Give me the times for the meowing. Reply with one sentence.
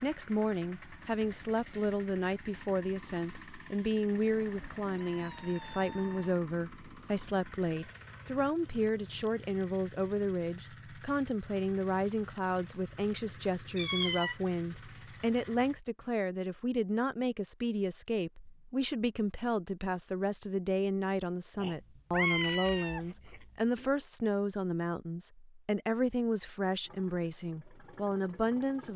You can hear the meowing from 4.1 to 6.3 s, from 13.8 to 14.3 s and from 21.6 to 23.9 s.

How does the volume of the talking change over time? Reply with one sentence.
The loudness of the talking stays about the same.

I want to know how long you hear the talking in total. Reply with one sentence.
You can hear the talking for 29 seconds altogether.